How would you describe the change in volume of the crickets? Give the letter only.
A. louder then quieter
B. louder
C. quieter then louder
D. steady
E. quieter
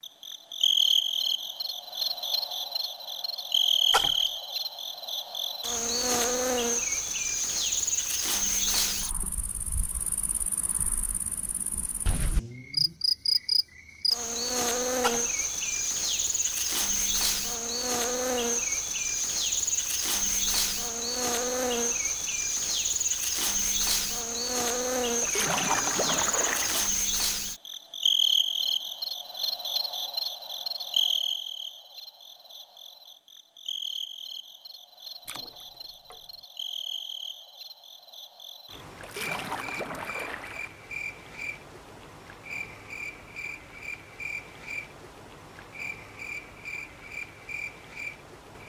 E.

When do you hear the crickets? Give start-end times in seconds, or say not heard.
0.0-48.6.